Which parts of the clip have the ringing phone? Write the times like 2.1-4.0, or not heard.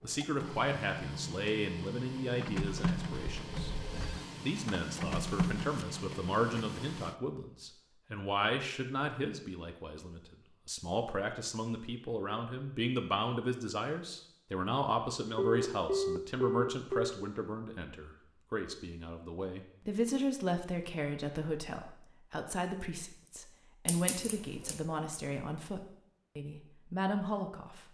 3.3-4.2, 15.3-17.2.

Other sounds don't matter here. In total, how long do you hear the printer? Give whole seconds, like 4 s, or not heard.
7 s.